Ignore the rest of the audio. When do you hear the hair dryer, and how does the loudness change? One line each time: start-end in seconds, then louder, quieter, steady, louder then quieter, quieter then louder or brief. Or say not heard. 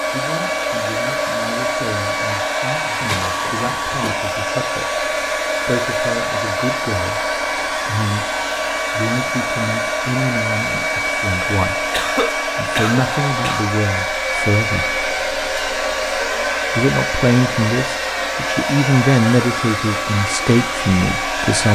0.0-21.7 steady.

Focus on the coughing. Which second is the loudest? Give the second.
12 s.